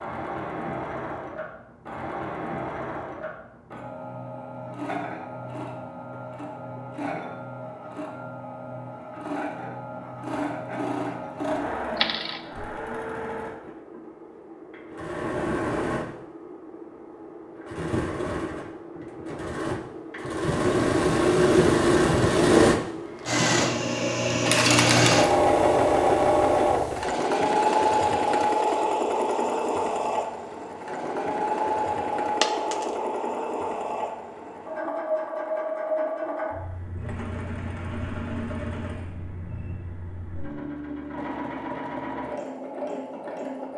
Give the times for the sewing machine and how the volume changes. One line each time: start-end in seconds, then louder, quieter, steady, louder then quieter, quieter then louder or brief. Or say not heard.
0.0-43.7 louder then quieter.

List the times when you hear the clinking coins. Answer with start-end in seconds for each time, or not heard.
11.9-12.7, 24.4-25.1, 32.4-32.9.